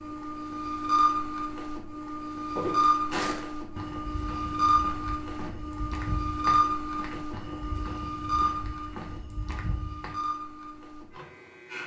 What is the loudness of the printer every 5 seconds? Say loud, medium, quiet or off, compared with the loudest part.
loud, loud, medium.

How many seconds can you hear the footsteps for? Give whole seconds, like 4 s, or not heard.
8 s.